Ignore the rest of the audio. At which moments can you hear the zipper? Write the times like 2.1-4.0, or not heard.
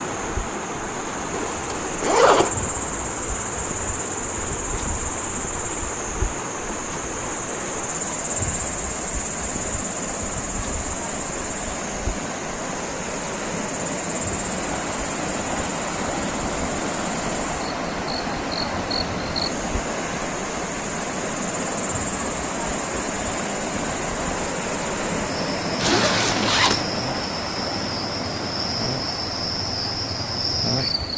1.3-2.5, 25.8-26.9.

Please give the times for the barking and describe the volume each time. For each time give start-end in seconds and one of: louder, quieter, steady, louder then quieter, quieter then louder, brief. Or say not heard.
not heard.